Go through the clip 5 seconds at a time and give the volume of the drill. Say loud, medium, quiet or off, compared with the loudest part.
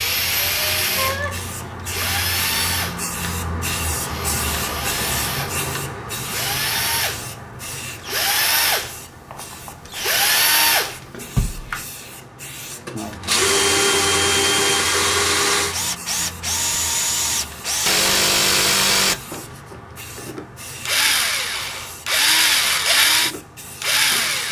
medium, medium, loud, loud, loud.